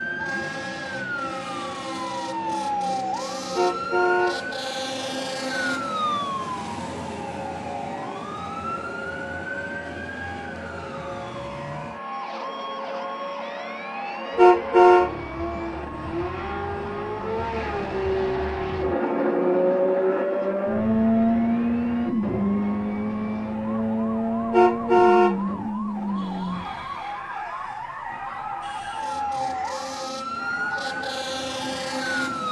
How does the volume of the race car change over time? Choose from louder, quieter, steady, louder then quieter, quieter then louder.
louder then quieter.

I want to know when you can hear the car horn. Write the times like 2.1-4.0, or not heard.
3.5-4.3, 14.3-15.1, 24.5-25.4.